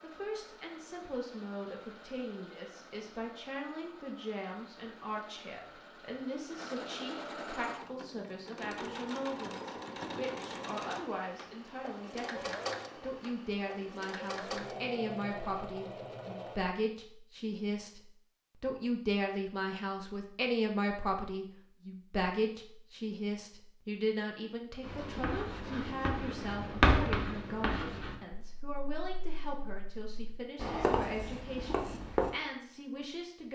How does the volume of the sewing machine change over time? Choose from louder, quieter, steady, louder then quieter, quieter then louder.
louder.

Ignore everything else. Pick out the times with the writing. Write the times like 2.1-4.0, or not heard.
24.8-32.3.